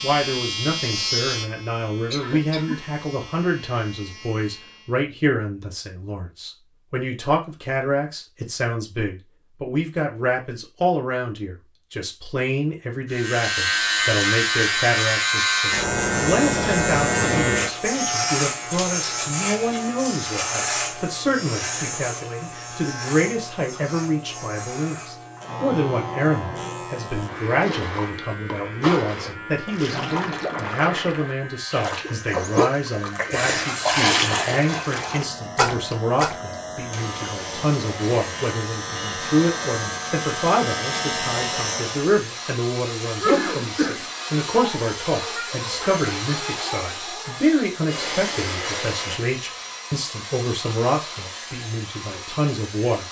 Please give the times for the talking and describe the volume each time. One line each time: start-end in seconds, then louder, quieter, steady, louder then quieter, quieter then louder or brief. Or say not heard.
0.0-53.0 steady.